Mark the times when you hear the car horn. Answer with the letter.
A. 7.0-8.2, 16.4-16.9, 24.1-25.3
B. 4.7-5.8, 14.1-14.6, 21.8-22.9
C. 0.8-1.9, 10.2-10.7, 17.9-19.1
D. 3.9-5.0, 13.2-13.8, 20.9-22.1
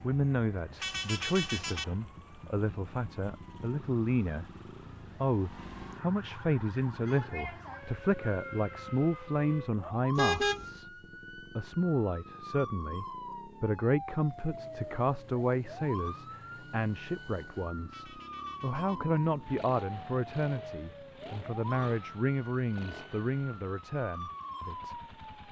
C.